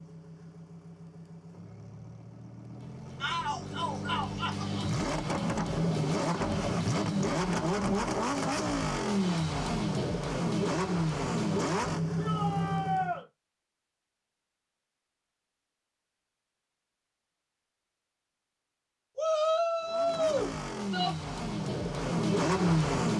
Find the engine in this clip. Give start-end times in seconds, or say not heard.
0.0-13.2, 19.8-23.1.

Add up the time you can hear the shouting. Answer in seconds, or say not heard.
5 s.